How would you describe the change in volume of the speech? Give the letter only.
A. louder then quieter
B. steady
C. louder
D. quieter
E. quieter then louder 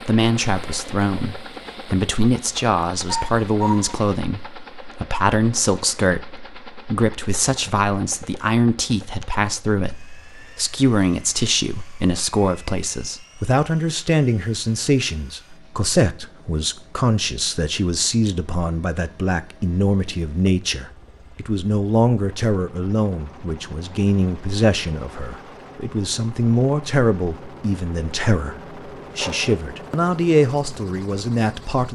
B.